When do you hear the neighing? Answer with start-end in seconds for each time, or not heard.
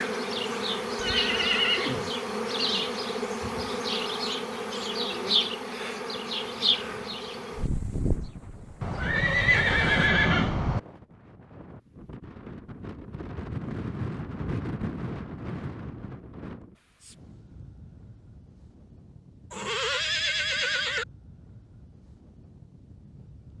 0.9-2.1, 8.8-10.8, 19.5-21.1.